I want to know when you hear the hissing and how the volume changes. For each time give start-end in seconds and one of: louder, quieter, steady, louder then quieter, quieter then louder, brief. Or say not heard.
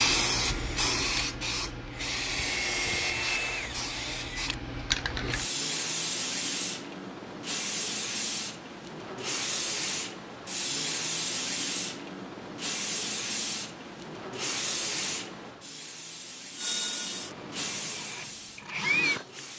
0.0-19.5 quieter.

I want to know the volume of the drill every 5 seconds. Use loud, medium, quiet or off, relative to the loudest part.
loud, off, off, loud.